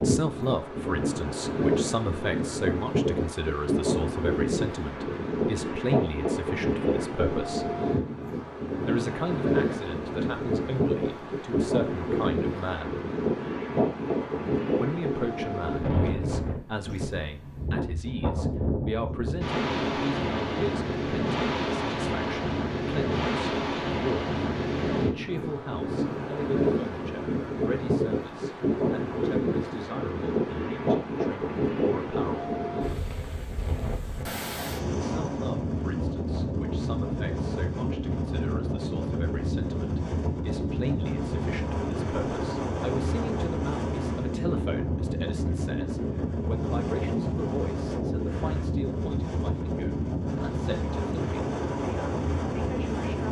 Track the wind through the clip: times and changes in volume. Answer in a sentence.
The wind can be heard from 0.0 to 53.2 s, at a steady volume.